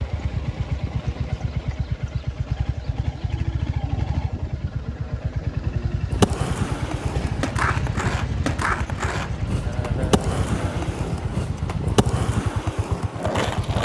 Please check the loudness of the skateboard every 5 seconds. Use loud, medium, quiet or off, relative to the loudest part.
off, loud, loud.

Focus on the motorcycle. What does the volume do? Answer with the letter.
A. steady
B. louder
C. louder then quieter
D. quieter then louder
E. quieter
A.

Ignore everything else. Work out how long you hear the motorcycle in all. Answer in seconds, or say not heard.
14 s.